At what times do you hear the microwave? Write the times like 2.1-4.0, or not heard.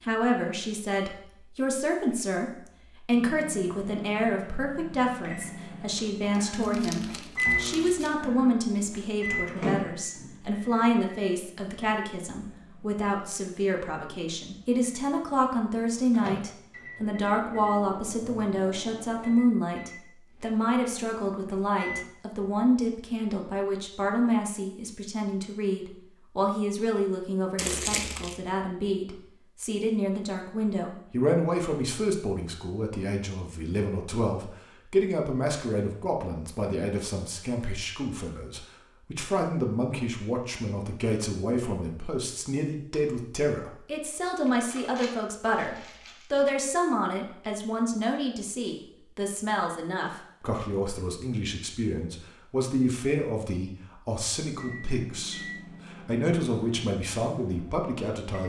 3.1-22.1, 54.5-58.4.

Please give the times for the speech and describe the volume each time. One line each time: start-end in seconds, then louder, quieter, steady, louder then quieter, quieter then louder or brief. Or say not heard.
0.0-58.4 steady.